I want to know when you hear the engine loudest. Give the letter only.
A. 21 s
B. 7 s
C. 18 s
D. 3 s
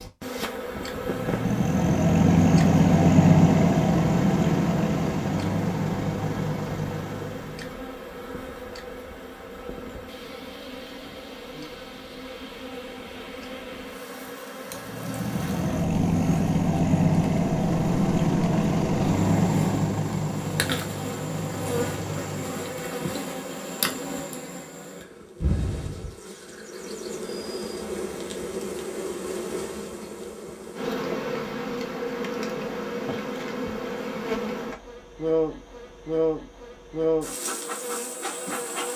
D.